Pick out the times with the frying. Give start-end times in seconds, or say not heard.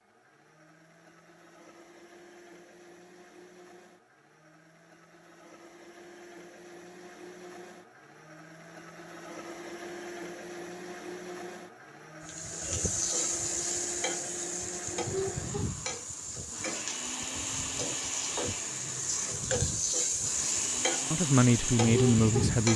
12.2-22.7.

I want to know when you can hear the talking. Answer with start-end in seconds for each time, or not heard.
21.1-22.7.